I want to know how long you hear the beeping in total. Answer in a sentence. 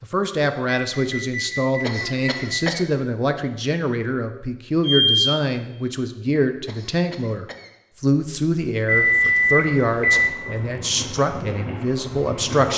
The beeping can be heard for 4 seconds in total.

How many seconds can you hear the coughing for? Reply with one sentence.
The coughing can be heard for 2 seconds in total.